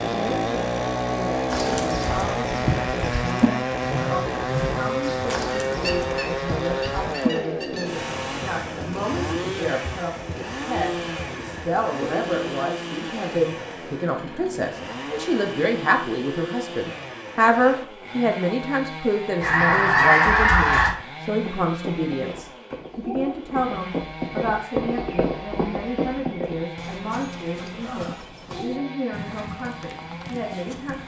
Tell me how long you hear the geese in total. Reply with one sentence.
The geese can be heard for 4 seconds in total.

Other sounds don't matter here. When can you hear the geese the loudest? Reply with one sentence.
The loudest moment of the geese is at 20 seconds.